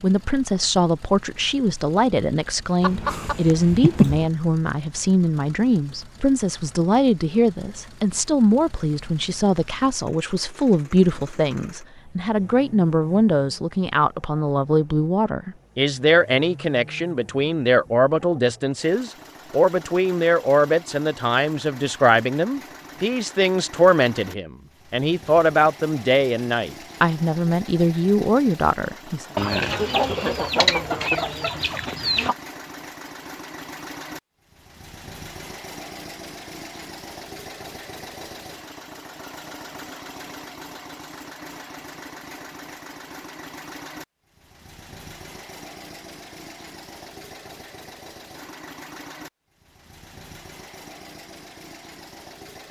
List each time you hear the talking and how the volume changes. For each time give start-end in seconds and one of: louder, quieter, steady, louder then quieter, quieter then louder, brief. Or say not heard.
0.0-29.2 steady.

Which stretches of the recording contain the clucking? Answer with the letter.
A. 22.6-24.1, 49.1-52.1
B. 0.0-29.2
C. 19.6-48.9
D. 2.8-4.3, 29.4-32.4
D.